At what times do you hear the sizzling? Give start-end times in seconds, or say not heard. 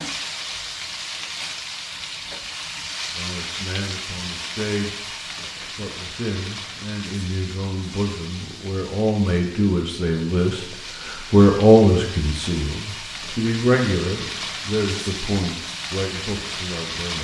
0.0-17.1.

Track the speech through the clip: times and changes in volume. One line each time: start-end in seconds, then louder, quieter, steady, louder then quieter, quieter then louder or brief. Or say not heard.
3.1-5.0 brief
5.8-17.1 louder then quieter.